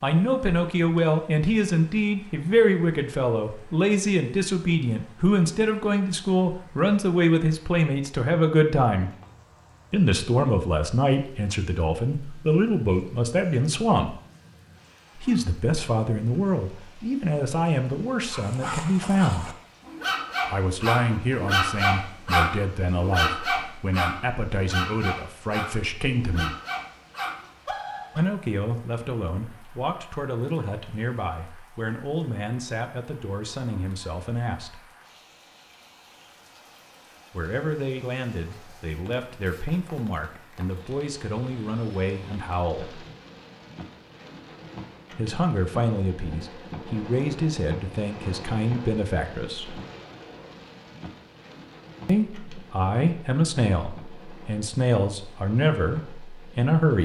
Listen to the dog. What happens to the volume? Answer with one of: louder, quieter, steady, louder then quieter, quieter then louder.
louder then quieter.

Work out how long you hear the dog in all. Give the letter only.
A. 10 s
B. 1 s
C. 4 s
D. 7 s
A.